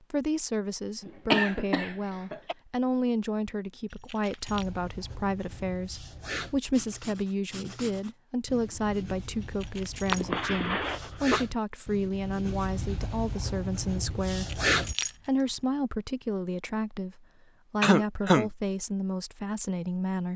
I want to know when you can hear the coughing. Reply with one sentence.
The coughing can be heard from 1.0 to 2.5 s, from 10.1 to 11.4 s and from 17.8 to 18.5 s.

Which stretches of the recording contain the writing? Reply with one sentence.
You can hear the writing from 4.5 to 14.9 s.